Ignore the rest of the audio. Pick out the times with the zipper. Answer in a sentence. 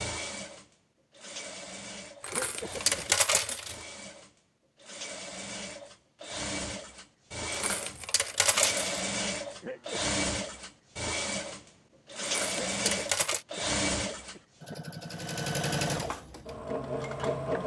The zipper can't be heard in this clip.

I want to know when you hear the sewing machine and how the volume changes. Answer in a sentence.
You can hear the sewing machine from 0.0 to 17.6 s, getting louder.